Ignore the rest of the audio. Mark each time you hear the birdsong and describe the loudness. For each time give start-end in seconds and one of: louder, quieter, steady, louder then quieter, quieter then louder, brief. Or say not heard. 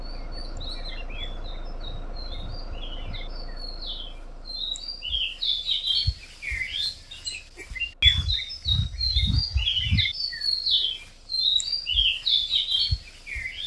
0.0-13.6 louder.